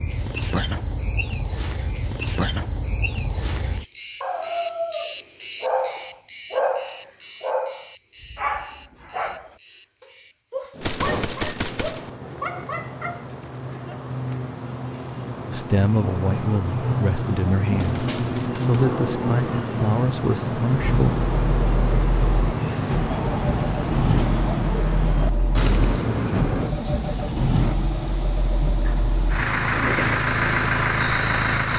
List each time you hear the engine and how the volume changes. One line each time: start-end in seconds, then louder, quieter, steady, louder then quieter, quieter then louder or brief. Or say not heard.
20.8-31.7 louder.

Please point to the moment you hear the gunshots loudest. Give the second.
11 s.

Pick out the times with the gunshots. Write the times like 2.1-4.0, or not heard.
10.8-12.1, 17.8-18.8.